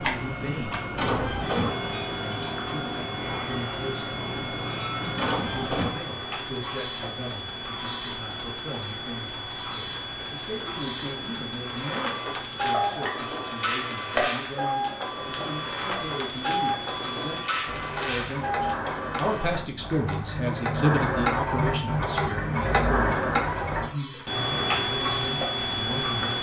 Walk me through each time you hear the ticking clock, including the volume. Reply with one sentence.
The ticking clock can be heard from 0.0 to 26.3 s, getting louder.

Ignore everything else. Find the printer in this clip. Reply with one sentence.
The printer can be heard from 0.0 to 26.3 s.